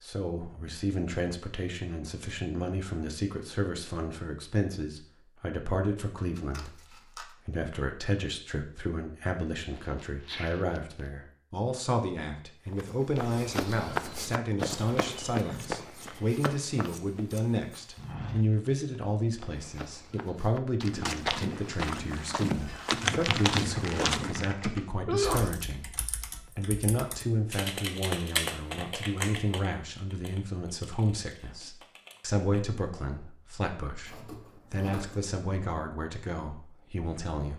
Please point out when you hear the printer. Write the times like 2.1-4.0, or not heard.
not heard.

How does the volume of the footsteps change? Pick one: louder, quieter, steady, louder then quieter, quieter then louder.
quieter then louder.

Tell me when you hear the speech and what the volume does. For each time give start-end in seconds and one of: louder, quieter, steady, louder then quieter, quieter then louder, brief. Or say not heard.
0.0-37.5 steady.